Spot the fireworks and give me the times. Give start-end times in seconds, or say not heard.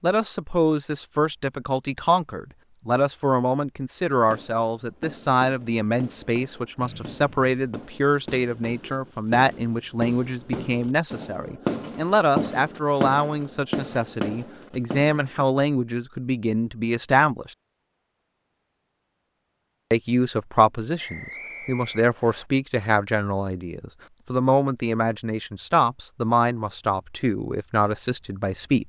4.3-15.4.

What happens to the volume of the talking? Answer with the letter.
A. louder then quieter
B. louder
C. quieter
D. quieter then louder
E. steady
E.